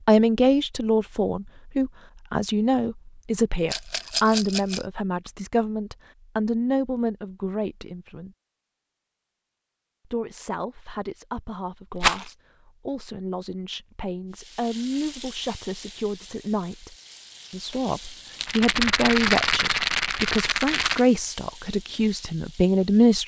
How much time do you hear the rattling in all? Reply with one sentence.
The rattling can be heard for 4 seconds in total.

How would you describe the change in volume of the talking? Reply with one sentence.
The volume of the talking goes down, then up.